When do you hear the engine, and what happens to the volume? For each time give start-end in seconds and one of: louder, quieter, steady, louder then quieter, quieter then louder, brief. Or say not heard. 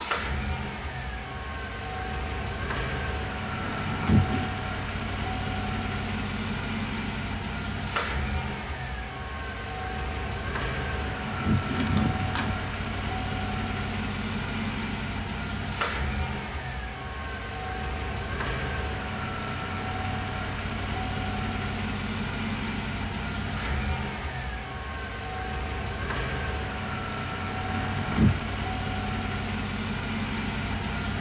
0.0-31.1 steady.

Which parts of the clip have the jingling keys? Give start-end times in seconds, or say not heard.
3.6-4.5, 10.9-12.6, 27.6-28.4.